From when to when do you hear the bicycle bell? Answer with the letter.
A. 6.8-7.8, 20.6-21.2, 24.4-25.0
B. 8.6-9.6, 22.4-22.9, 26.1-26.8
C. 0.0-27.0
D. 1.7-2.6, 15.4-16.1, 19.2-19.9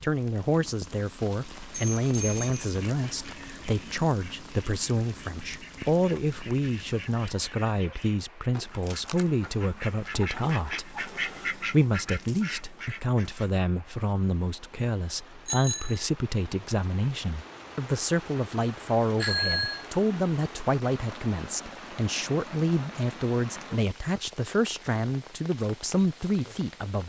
D.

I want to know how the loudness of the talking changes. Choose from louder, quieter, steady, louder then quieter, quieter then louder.
steady.